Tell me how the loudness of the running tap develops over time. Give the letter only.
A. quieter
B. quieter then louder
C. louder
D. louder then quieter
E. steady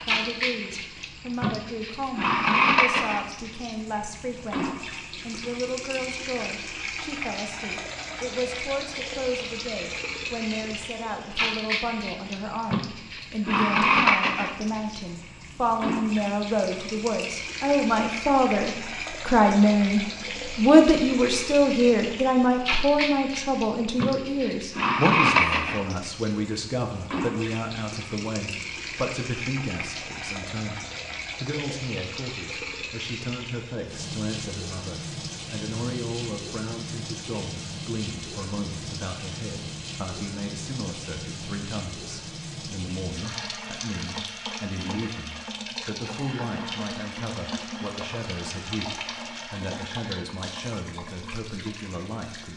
A.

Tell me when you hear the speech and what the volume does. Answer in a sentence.
You can hear the speech from 0.0 to 52.5 s, getting louder then quieter.